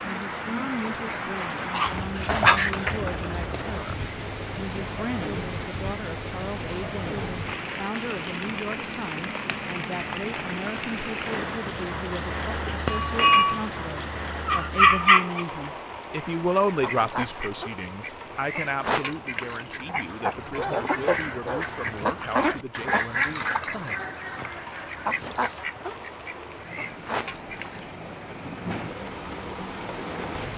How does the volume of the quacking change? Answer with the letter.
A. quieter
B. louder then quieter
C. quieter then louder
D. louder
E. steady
B.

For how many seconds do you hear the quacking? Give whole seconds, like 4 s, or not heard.
12 s.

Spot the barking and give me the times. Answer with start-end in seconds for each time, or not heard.
1.4-3.0, 12.8-13.6, 14.4-15.4, 20.6-22.1.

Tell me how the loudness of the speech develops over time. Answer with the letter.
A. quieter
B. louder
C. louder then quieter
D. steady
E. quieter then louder
C.